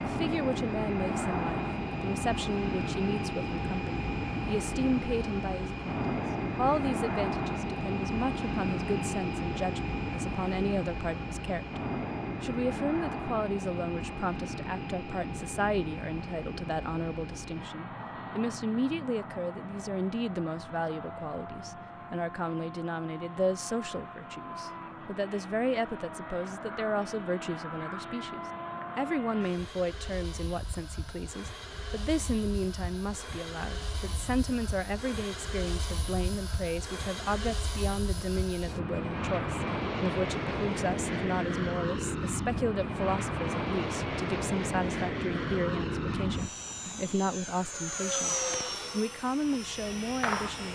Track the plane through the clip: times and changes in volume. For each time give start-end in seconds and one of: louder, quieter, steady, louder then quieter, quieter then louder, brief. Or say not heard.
0.0-50.7 quieter then louder.